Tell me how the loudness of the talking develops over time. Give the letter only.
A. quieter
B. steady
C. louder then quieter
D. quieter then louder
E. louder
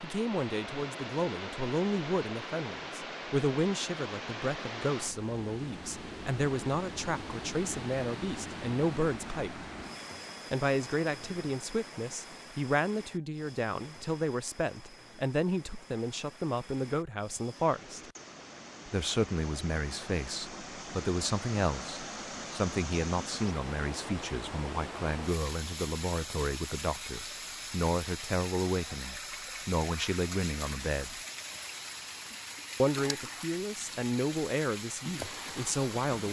B.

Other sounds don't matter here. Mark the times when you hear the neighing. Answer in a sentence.
The neighing can't be heard in this clip.